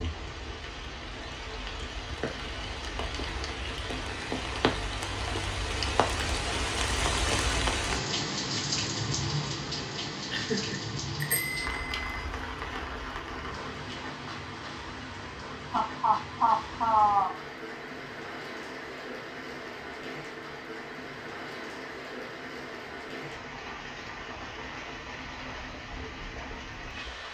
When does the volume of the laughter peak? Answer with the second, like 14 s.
17 s.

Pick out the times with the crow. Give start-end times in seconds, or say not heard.
not heard.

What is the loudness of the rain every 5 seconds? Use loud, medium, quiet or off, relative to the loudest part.
medium, loud, medium, medium, medium, medium.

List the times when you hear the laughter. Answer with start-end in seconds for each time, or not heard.
10.3-10.9, 15.7-17.3.